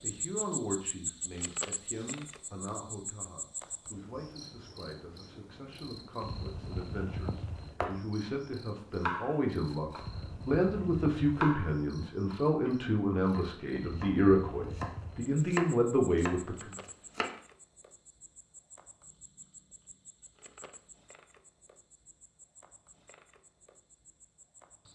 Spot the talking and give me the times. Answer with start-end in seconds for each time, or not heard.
0.0-16.8.